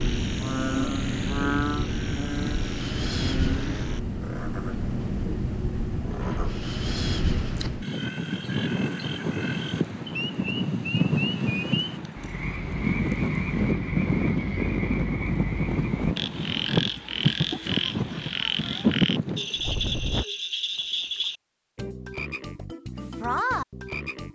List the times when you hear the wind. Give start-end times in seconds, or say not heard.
0.0-20.2.